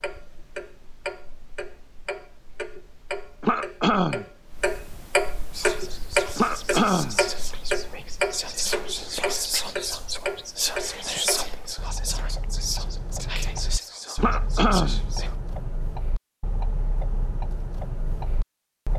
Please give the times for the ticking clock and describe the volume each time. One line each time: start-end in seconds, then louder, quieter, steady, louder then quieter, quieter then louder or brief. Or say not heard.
0.0-18.9 louder then quieter.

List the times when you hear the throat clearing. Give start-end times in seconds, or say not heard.
3.4-4.2, 6.3-7.2, 14.2-15.0.